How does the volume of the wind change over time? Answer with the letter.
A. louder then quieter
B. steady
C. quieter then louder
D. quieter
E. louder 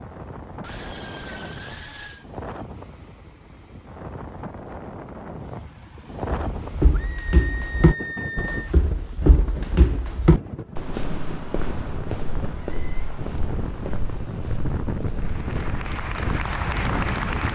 E.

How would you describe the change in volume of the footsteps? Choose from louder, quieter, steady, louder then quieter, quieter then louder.
quieter.